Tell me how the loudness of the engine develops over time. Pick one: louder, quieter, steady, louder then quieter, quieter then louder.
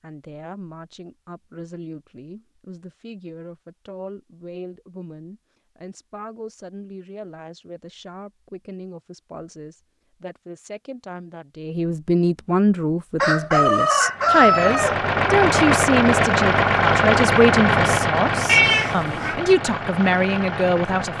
quieter.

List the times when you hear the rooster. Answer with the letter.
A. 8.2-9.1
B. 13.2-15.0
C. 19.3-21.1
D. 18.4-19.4
B.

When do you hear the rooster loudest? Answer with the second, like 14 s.
14 s.